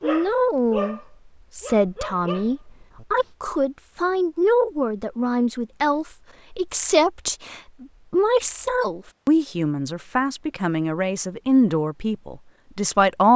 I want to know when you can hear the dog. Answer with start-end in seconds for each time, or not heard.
0.0-3.0.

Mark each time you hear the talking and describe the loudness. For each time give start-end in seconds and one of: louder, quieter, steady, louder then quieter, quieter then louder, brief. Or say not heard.
0.0-13.3 steady.